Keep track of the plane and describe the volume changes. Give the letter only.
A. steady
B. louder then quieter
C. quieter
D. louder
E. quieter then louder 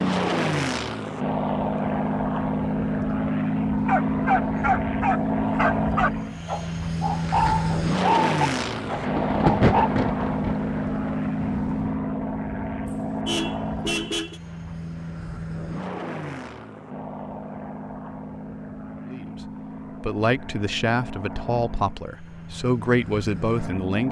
C.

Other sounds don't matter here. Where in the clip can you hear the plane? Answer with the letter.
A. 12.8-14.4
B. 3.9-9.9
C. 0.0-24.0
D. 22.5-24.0
C.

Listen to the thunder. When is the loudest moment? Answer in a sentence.
The volume of the thunder peaks at 10 seconds.